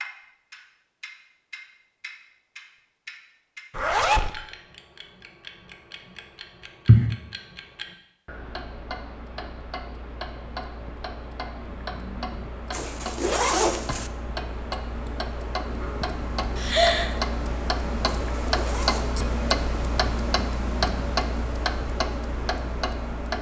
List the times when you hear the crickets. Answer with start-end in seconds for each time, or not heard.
not heard.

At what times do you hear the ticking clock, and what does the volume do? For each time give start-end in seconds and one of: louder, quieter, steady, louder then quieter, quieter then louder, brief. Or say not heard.
0.0-23.3 louder.